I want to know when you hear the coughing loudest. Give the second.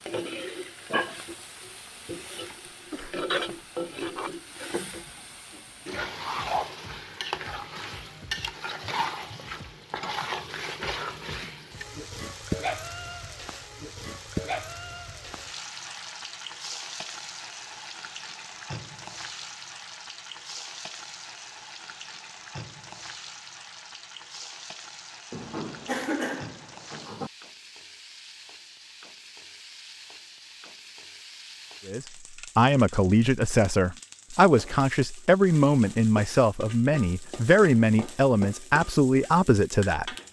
26 s.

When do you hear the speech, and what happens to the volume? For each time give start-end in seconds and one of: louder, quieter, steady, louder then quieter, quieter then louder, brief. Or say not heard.
31.9-40.1 steady.